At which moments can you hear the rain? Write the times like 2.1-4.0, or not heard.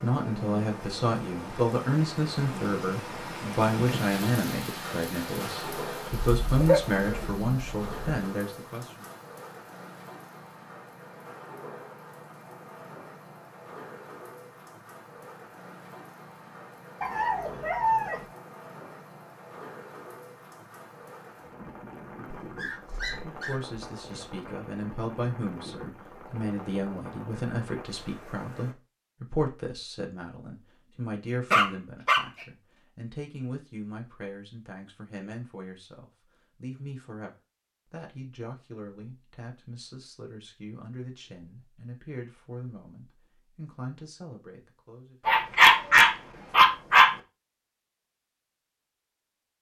0.0-28.8.